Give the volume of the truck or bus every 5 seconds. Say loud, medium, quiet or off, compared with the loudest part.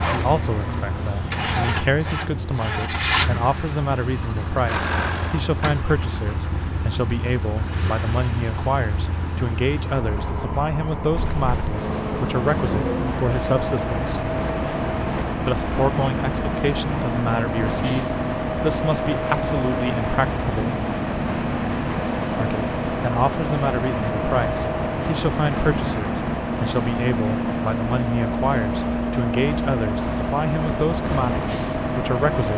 loud, medium, loud, loud, loud, loud, loud.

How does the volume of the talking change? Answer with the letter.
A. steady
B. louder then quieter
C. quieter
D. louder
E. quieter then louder
A.